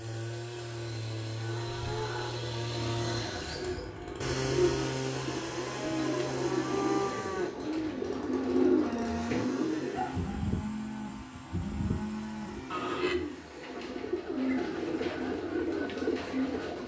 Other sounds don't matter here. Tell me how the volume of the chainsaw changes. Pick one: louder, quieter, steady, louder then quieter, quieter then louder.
quieter.